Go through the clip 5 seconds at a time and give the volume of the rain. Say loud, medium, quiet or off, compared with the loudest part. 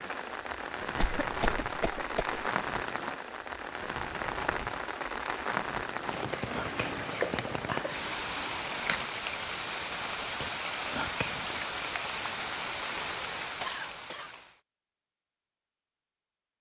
loud, loud, loud, off.